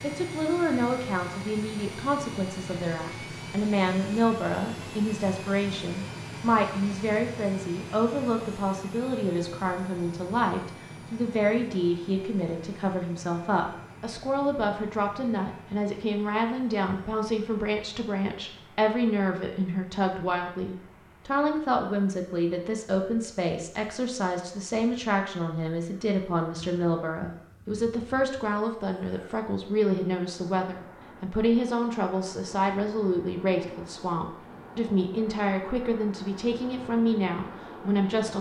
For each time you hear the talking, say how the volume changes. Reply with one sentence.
You can hear the talking from 0.0 to 38.3 s, at a steady volume.